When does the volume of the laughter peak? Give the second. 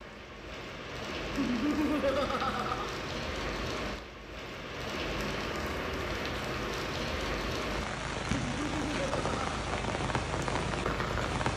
2 s.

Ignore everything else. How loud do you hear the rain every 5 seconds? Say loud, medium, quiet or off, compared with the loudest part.
medium, loud, loud.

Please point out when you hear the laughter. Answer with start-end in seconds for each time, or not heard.
1.4-2.9, 8.3-9.7.